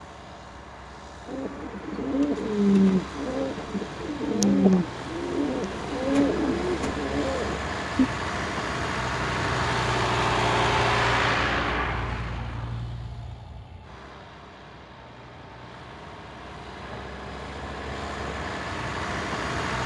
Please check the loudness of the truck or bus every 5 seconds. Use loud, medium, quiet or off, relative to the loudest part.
quiet, loud, loud, medium.